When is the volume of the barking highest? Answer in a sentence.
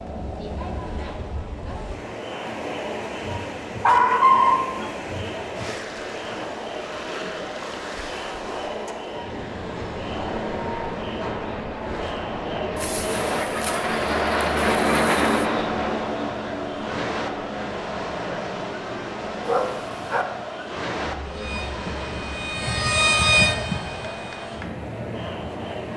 The loudest moment of the barking is at 4 seconds.